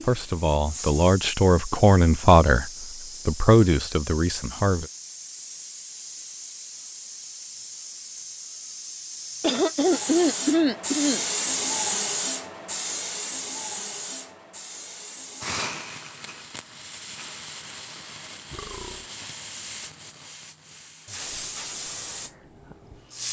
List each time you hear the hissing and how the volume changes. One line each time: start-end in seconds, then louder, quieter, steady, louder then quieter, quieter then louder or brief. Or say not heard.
0.0-23.2 louder then quieter.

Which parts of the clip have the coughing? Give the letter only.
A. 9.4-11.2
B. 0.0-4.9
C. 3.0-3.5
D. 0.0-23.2
A.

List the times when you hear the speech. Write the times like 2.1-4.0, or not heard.
0.0-4.9.